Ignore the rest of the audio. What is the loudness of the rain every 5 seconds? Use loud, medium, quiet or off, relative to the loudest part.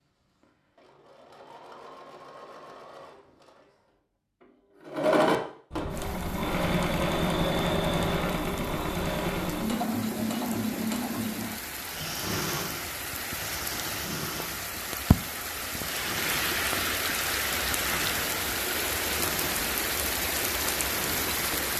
off, quiet, medium, loud, loud.